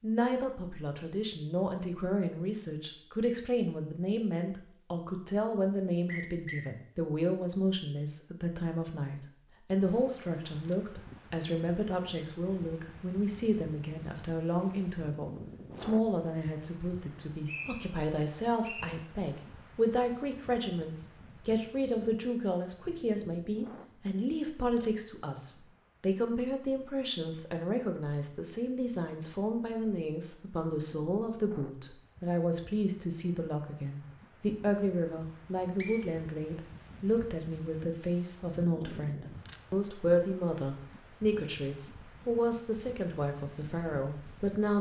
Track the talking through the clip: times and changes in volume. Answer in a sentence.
The talking can be heard from 0.0 to 44.7 s, at a steady volume.